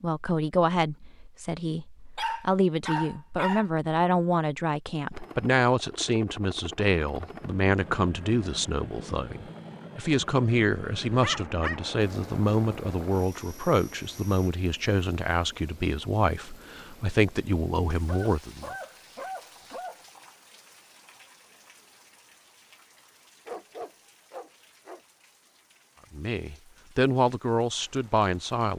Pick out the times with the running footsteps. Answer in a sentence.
The running footsteps can't be heard in this clip.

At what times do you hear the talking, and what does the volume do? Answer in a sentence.
The talking can be heard from 0.0 to 18.8 s, at a steady volume; and briefly from 26.1 to 28.7 s.